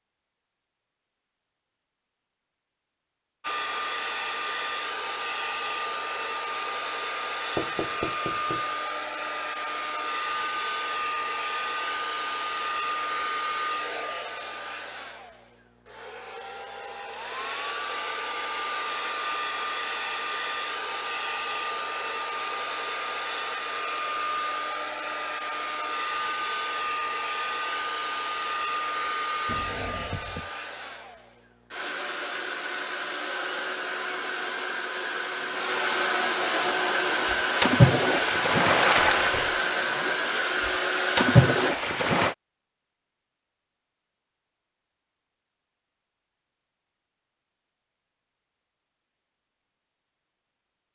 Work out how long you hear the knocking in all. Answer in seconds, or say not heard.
3 s.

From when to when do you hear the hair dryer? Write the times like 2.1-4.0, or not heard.
3.4-41.8.